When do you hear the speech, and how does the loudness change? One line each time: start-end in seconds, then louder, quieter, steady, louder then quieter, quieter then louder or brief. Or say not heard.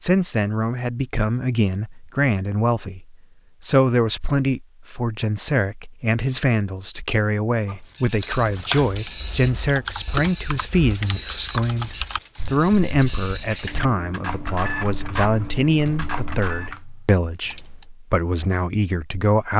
0.0-19.5 steady.